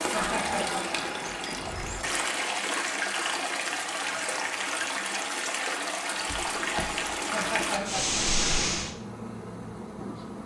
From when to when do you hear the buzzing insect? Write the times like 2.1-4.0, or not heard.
0.0-2.2, 6.1-10.4.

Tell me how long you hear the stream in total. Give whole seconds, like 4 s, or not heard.
9 s.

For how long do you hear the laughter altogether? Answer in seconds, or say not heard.
2 s.